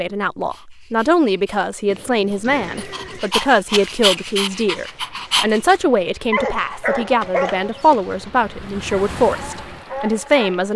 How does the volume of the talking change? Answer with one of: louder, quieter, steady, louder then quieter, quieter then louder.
steady.